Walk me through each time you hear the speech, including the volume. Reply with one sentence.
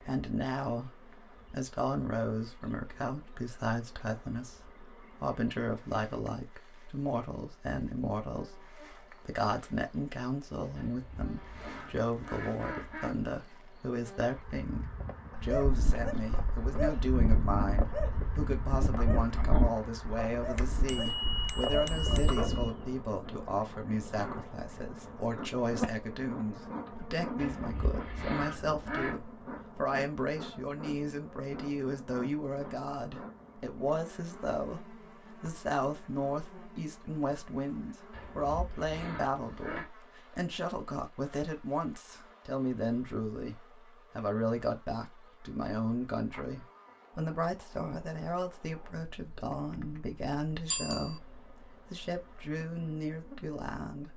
You can hear the speech from 0.1 to 54.1 s, at a steady volume.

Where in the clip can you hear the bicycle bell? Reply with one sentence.
The bicycle bell can be heard from 20.6 to 22.8 s and from 50.7 to 51.2 s.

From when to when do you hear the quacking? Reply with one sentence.
You can hear the quacking from 10.8 to 13.2 s, from 27.4 to 29.2 s and from 38.1 to 39.9 s.